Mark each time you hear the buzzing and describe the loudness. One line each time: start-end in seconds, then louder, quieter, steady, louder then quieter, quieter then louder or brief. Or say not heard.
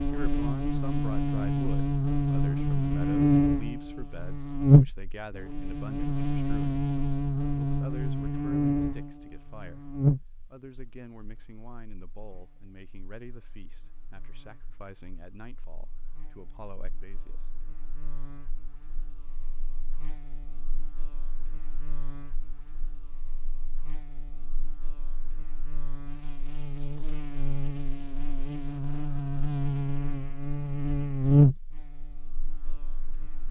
0.0-33.4 quieter then louder.